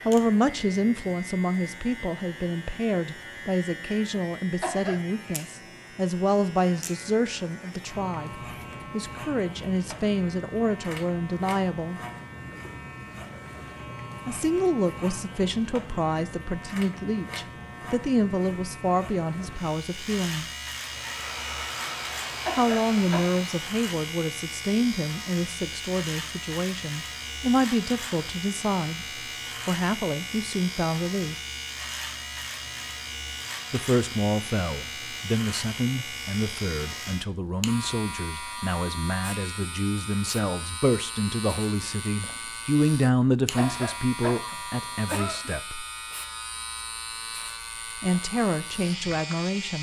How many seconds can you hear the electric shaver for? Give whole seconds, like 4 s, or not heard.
50 s.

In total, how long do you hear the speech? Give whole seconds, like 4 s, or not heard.
41 s.